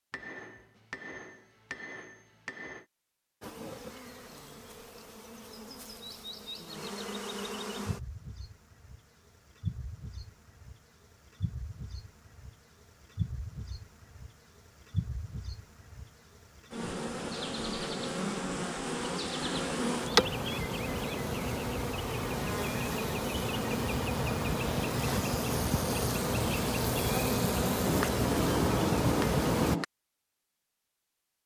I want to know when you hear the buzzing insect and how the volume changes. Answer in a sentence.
The buzzing insect can be heard from 3.4 to 29.8 s, getting louder.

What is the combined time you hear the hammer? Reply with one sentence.
The hammer can be heard for 5 seconds in total.